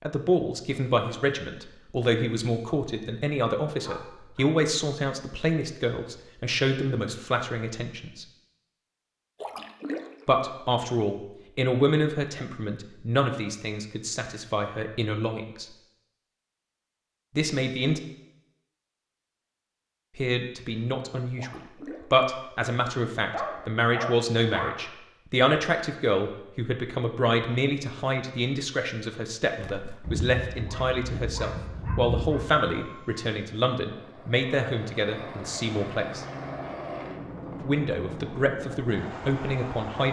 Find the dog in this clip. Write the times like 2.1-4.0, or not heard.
3.8-4.5, 23.3-24.9, 30.0-32.6.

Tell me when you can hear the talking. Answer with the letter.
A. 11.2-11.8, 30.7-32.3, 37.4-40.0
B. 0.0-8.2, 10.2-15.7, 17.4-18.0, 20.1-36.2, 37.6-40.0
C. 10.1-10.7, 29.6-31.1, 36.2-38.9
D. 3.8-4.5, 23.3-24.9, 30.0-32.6
B.